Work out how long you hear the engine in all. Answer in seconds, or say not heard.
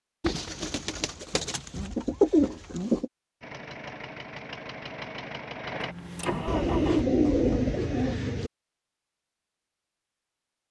4 s.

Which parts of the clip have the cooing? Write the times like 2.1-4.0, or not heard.
0.2-3.0, 6.5-8.5.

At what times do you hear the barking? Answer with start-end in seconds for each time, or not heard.
not heard.